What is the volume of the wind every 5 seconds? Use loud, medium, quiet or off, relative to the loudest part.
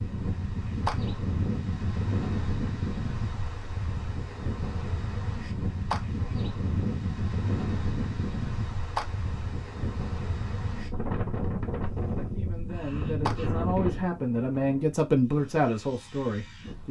loud, loud, loud, quiet.